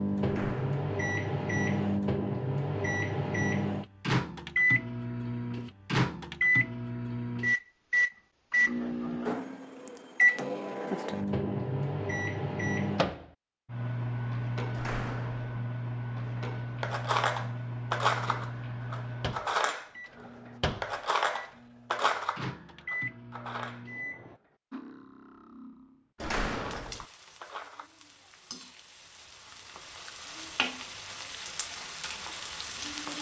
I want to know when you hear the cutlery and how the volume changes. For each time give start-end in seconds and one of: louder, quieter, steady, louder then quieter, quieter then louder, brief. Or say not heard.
16.1-27.9 quieter.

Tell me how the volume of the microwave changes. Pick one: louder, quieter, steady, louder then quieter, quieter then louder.
quieter.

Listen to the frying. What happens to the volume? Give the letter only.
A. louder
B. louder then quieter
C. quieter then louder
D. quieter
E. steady
A.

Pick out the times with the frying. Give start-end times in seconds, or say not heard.
26.5-33.1.